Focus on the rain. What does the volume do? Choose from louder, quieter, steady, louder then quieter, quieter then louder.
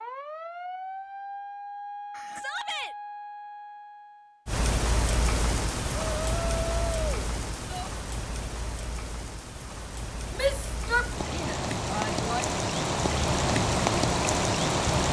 quieter then louder.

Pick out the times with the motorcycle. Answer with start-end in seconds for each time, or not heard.
not heard.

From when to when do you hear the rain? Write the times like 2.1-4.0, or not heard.
4.5-15.0.